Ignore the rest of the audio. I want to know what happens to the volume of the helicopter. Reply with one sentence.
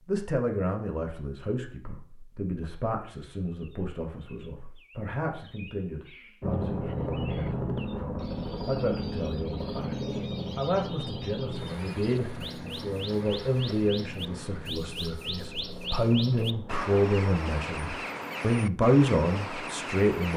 The loudness of the helicopter goes down.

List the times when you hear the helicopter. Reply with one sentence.
The helicopter can be heard from 6.4 to 16.8 s.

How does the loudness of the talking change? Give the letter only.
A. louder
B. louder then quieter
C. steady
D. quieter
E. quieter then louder
A.